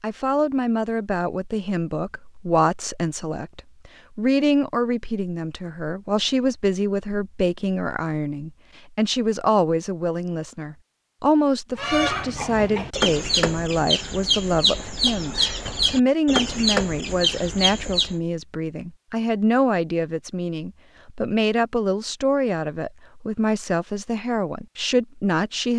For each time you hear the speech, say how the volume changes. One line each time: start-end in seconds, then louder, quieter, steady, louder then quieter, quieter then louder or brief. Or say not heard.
0.0-25.7 steady.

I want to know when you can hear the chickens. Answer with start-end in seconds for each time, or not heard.
11.8-18.1.